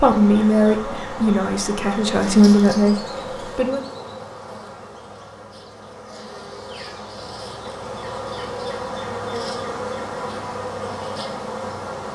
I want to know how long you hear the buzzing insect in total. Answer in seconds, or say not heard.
12 s.